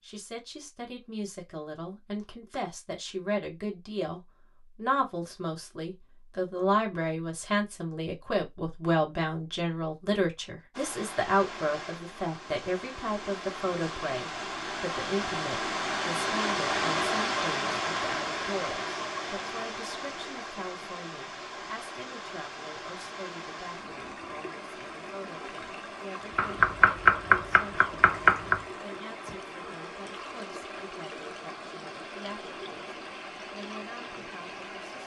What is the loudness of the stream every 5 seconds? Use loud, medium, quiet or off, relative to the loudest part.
off, off, medium, loud, medium, medium, medium.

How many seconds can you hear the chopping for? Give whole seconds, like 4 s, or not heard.
2 s.